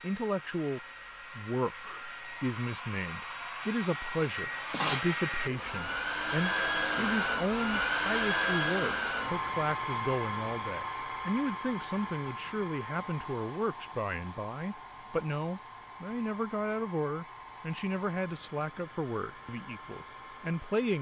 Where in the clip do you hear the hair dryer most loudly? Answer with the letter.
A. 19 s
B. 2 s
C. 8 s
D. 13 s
C.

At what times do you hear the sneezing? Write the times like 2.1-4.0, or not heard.
4.7-5.6.